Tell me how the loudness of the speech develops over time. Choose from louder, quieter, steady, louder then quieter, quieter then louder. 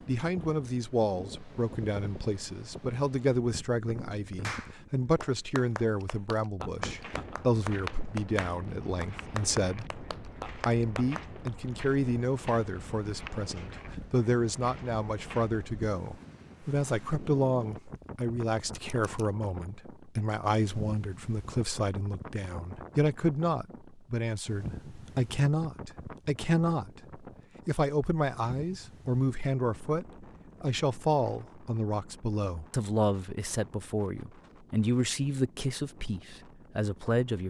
steady.